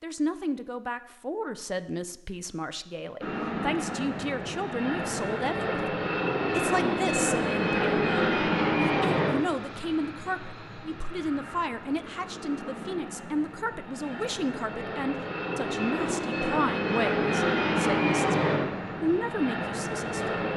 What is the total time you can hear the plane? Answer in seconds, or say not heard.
17 s.